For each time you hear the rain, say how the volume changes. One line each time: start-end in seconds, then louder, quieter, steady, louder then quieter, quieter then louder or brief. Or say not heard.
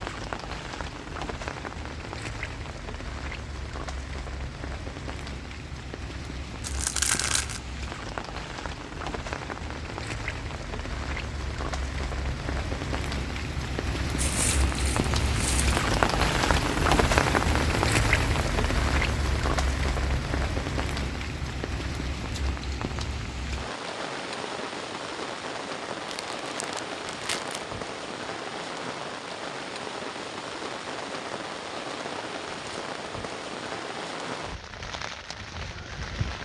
0.0-36.4 louder then quieter.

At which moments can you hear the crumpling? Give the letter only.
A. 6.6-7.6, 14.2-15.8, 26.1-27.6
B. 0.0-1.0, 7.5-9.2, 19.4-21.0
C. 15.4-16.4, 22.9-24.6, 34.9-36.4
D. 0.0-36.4
A.